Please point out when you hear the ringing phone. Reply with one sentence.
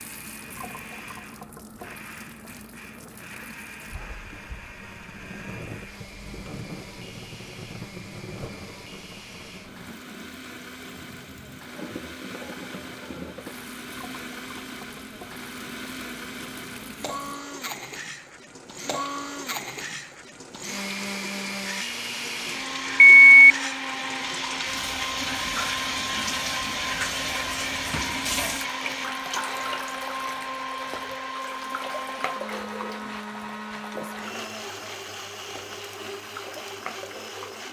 The ringing phone can be heard from 23.0 to 23.6 s.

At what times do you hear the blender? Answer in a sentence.
The blender can be heard from 0.0 to 37.6 s.